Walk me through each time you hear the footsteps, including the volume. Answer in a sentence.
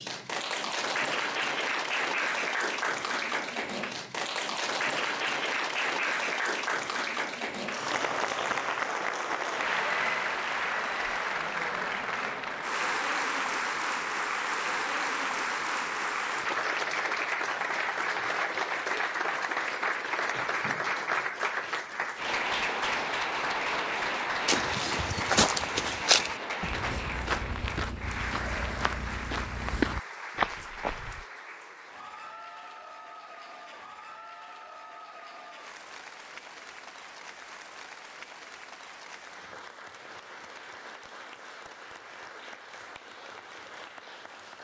The footsteps can be heard from 24.4 to 31.2 s, getting quieter then louder.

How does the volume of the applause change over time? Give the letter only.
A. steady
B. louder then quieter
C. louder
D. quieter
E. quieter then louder
D.